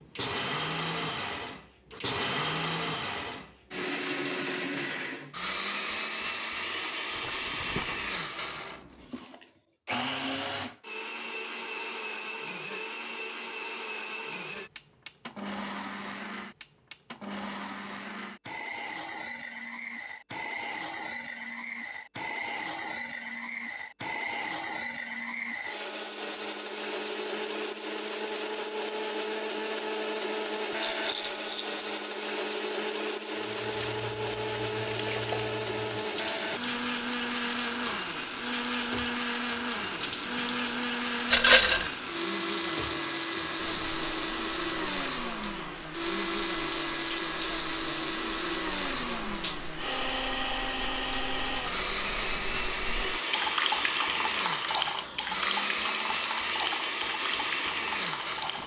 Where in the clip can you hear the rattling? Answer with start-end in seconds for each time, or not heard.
7.1-8.2, 30.8-31.8, 41.3-41.9.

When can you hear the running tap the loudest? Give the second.
54 s.